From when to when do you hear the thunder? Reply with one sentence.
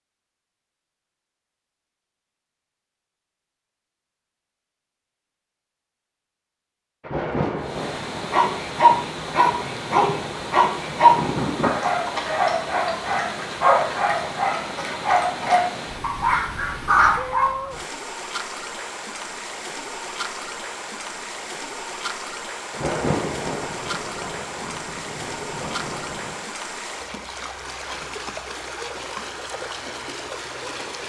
The thunder can be heard from 7.0 to 11.8 s and from 22.7 to 26.4 s.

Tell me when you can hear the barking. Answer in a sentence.
You can hear the barking from 8.3 to 17.6 s.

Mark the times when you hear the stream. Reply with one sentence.
The stream can be heard from 7.5 to 31.0 s.